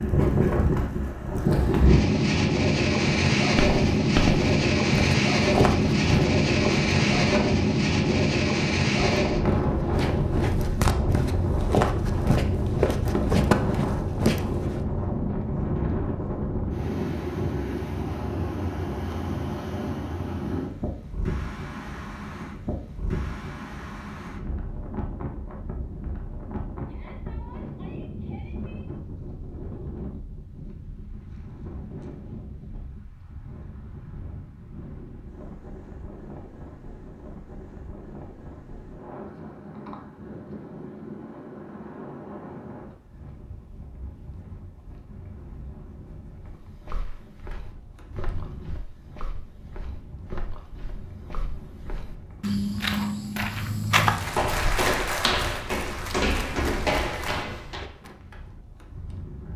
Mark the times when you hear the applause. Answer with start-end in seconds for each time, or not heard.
54.0-57.5.